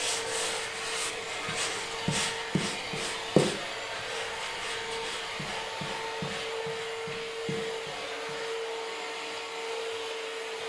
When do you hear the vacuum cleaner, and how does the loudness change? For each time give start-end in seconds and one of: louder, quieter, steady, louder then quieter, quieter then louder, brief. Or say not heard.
0.0-10.6 steady.